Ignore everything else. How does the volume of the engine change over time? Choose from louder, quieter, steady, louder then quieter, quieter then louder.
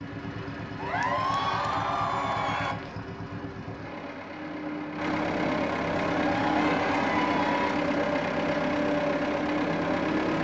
louder.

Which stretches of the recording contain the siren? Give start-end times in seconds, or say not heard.
not heard.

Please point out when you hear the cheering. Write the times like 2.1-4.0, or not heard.
0.8-2.8, 6.2-7.8.